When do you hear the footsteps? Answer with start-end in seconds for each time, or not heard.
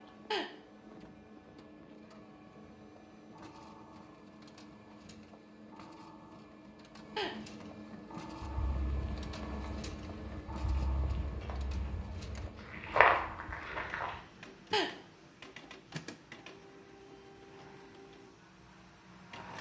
8.4-14.2.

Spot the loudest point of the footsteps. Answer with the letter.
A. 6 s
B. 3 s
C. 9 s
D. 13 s
D.